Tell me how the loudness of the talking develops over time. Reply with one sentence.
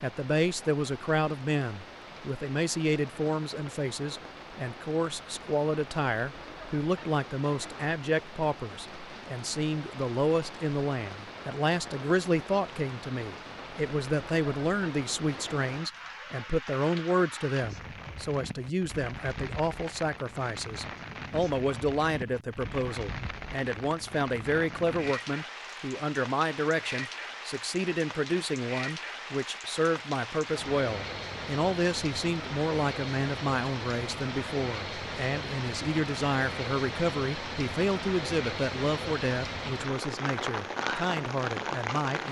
The volume of the talking stays about the same.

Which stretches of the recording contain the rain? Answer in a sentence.
You can hear the rain from 0.0 to 42.2 s.